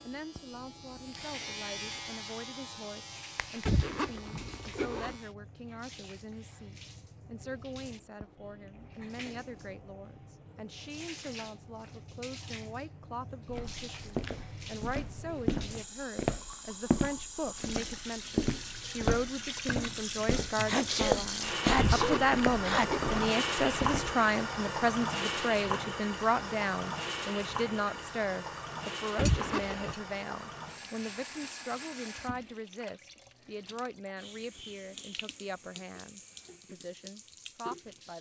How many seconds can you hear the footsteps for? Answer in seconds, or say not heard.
11 s.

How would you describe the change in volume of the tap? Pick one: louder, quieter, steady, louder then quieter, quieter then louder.
louder then quieter.